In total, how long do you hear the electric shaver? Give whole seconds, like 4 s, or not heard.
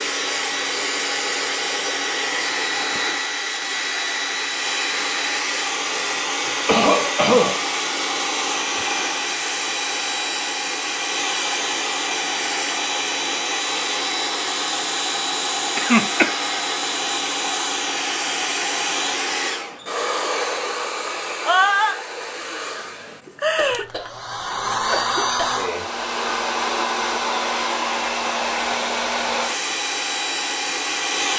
not heard.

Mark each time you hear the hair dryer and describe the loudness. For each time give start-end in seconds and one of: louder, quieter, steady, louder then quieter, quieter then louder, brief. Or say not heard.
0.0-31.3 steady.